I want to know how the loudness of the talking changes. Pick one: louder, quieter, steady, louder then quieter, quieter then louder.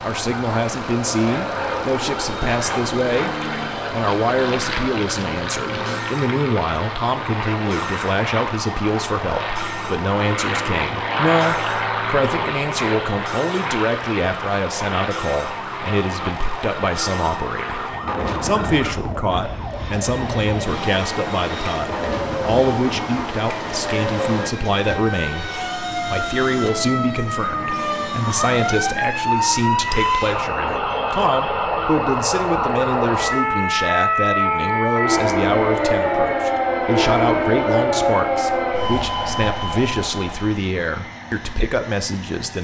steady.